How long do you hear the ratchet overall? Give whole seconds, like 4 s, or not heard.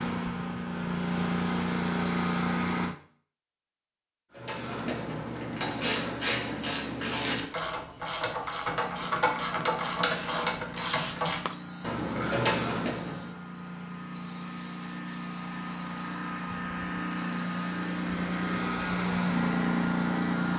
9 s.